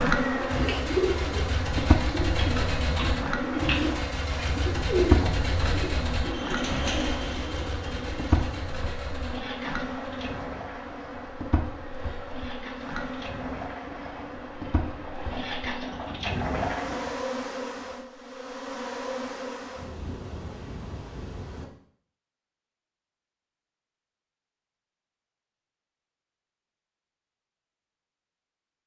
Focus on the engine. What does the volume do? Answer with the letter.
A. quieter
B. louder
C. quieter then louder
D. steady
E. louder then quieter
C.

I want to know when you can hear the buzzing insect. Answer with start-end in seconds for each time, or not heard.
0.0-21.7.